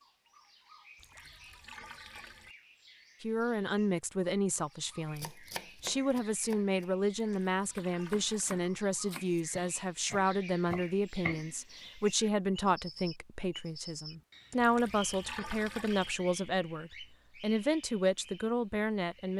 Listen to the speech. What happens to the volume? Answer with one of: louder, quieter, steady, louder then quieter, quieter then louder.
steady.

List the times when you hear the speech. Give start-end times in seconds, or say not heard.
3.2-19.3.